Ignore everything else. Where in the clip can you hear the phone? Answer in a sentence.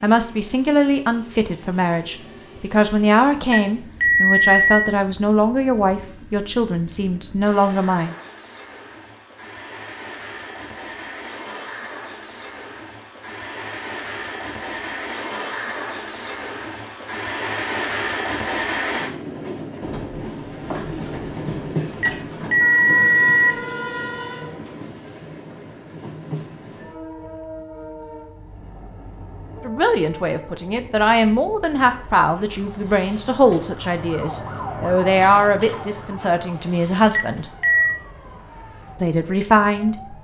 The phone can be heard from 3.5 to 5.0 s, from 22.0 to 23.6 s and from 37.1 to 38.0 s.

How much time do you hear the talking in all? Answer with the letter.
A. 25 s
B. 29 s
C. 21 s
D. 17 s
D.